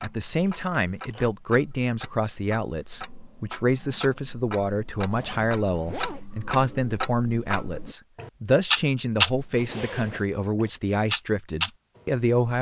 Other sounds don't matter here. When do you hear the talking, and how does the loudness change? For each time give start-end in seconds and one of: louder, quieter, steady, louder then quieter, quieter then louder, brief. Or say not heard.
0.0-12.5 steady.